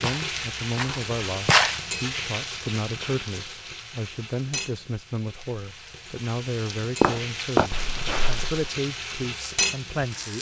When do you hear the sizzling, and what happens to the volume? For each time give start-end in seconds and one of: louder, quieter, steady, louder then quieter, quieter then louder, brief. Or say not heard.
0.0-10.3 quieter then louder.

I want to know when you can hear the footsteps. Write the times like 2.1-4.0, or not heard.
0.0-1.9, 7.0-8.7.